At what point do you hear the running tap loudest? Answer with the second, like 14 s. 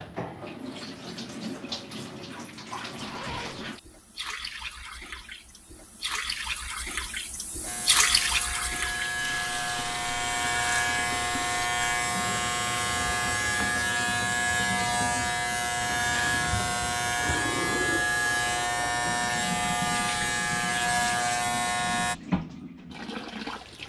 8 s.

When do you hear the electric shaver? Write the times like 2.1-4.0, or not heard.
7.7-22.1.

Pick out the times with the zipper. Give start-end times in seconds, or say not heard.
3.0-3.7.